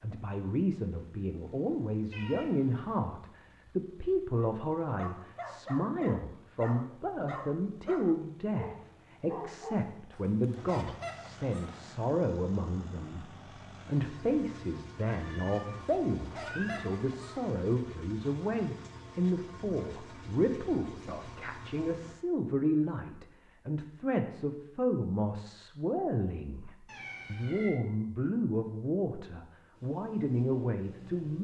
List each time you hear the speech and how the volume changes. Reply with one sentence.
The speech can be heard from 0.0 to 31.3 s, at a steady volume.